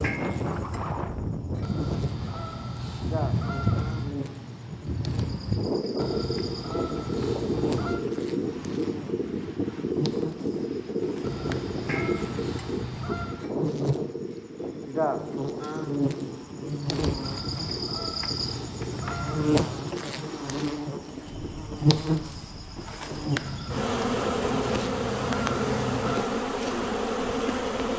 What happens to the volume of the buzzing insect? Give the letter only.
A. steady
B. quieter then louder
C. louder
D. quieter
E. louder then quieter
C.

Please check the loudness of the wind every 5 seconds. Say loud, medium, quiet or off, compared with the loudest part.
loud, loud, loud, medium, quiet, quiet.